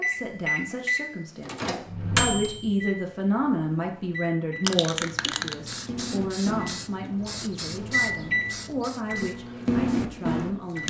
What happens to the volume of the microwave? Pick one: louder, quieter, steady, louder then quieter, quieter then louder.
quieter then louder.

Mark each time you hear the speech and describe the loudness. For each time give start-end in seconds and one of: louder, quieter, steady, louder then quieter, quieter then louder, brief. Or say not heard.
0.0-10.8 louder then quieter.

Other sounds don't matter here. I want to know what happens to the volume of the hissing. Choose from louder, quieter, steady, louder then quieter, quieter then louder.
quieter.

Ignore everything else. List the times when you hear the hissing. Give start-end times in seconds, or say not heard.
4.6-10.8.